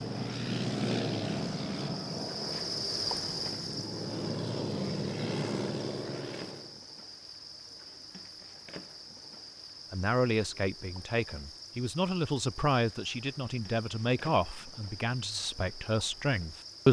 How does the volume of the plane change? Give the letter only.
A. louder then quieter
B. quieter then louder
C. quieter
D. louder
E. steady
B.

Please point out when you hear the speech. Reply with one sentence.
The speech can be heard from 9.9 to 16.8 s.